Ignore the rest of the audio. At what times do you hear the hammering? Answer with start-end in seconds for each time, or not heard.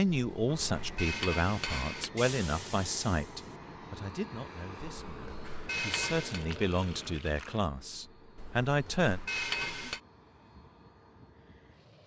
0.1-2.1, 4.8-6.5, 8.3-10.0.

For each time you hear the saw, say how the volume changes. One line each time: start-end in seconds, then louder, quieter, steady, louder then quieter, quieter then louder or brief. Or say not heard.
not heard.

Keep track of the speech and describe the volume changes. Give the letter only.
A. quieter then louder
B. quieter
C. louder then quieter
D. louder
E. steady
A.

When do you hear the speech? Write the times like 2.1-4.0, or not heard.
0.0-9.2.